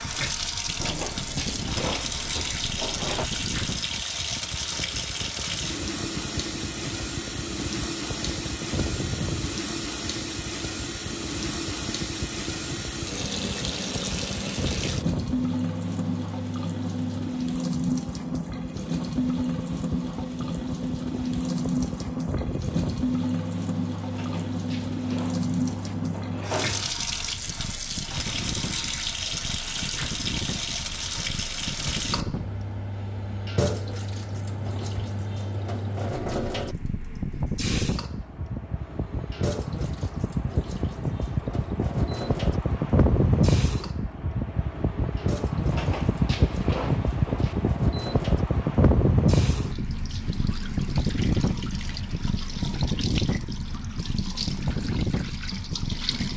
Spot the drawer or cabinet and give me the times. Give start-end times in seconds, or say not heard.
0.8-3.3, 24.1-26.9, 45.7-47.8.